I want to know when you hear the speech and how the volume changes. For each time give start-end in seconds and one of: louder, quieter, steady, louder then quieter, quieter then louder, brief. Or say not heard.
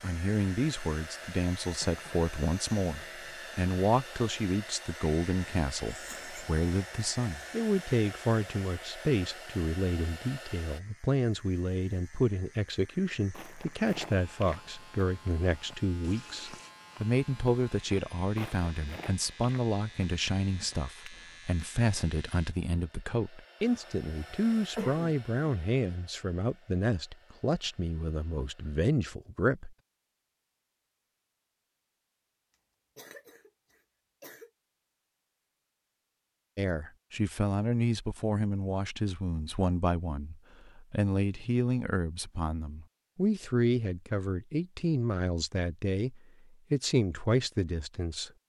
0.0-29.8 steady
36.5-48.3 steady.